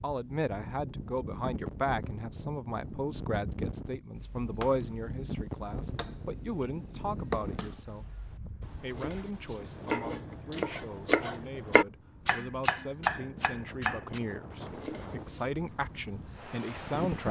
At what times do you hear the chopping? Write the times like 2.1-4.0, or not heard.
4.1-15.5.